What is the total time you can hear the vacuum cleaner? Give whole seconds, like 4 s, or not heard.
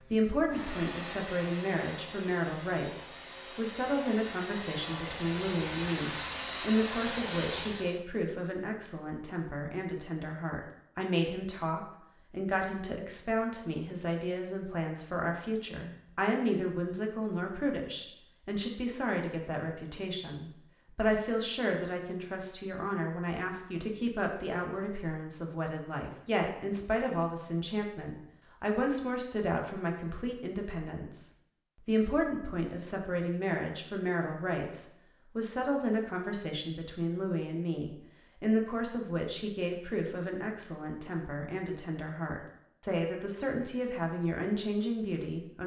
8 s.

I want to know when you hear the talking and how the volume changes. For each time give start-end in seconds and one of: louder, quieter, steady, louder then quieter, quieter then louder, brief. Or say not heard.
0.0-45.6 steady.